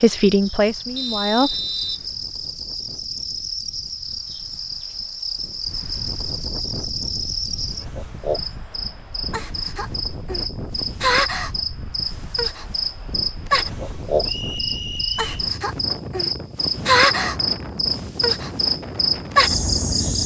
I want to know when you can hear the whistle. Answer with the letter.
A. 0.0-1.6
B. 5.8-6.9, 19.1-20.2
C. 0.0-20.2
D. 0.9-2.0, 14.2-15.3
D.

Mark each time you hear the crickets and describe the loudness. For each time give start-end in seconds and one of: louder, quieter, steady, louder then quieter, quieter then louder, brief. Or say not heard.
0.0-20.2 louder.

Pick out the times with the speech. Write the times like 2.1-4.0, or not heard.
0.0-1.6.